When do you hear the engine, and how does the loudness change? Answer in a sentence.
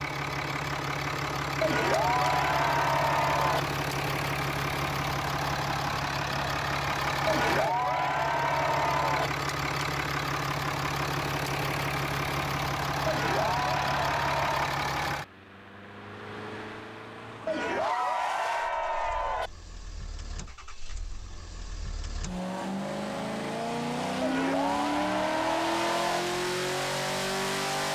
You can hear the engine from 0.0 to 27.9 s, getting quieter then louder.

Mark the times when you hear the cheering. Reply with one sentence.
The cheering can be heard from 1.6 to 3.6 s, from 7.2 to 9.3 s, from 13.1 to 14.8 s, from 17.4 to 19.5 s and from 24.2 to 26.2 s.